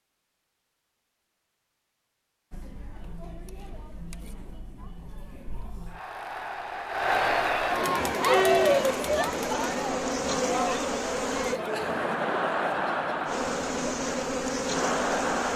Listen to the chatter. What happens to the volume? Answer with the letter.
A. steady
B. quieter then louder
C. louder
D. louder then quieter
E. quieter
D.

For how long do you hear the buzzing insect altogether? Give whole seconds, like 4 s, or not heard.
6 s.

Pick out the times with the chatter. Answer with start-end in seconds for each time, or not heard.
2.5-15.5.